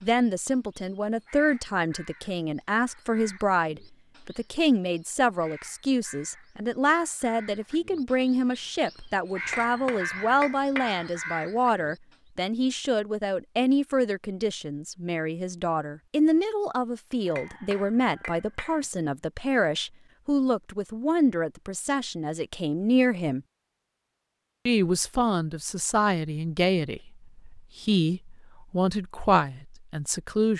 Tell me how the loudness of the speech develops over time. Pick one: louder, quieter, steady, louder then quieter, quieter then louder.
steady.